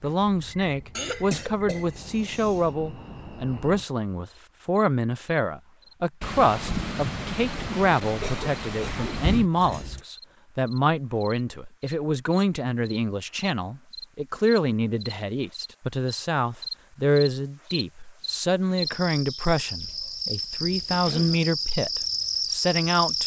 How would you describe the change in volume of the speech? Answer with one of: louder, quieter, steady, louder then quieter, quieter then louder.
steady.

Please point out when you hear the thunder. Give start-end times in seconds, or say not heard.
6.2-9.5.